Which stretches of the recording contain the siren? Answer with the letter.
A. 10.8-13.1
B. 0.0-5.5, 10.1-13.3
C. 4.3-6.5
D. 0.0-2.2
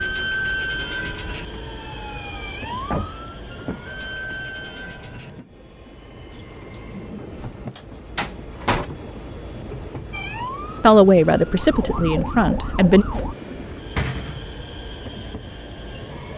B.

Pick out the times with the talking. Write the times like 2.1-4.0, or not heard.
10.8-13.1.